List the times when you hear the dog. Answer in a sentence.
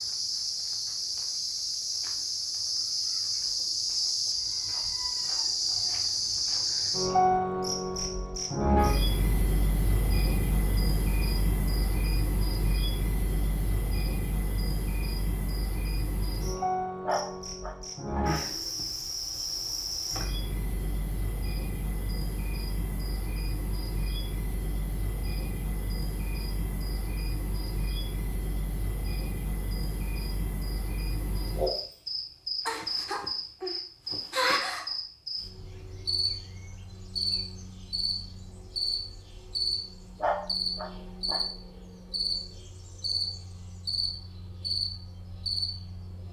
The dog can be heard from 17.1 to 18.2 s and from 40.2 to 41.4 s.